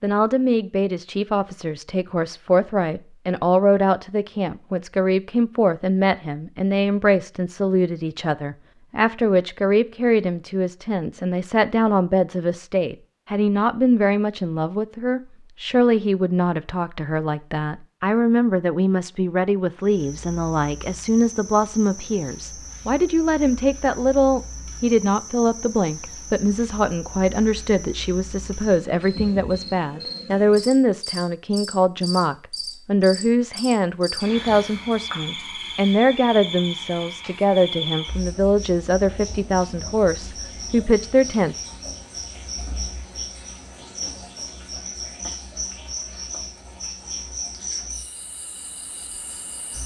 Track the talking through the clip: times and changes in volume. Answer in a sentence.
The talking can be heard from 0.0 to 41.5 s, at a steady volume.